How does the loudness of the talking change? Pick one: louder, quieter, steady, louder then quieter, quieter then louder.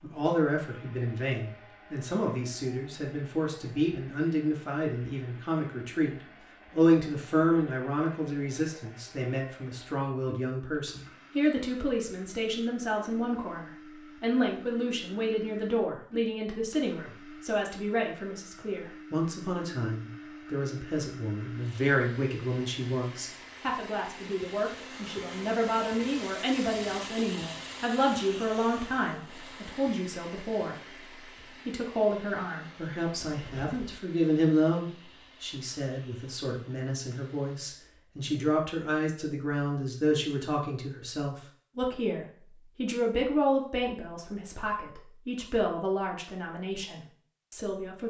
steady.